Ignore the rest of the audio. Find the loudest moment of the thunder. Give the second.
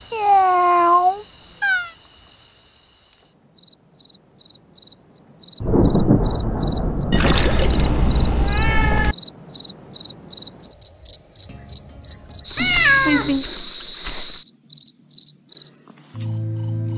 6 s.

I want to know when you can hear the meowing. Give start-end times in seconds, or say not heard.
0.1-1.9, 7.1-9.2, 12.6-13.4.